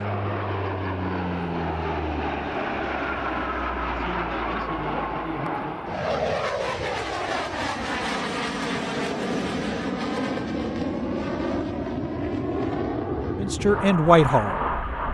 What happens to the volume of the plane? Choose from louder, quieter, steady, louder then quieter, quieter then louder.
steady.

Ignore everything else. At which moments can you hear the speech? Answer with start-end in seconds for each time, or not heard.
13.3-14.6.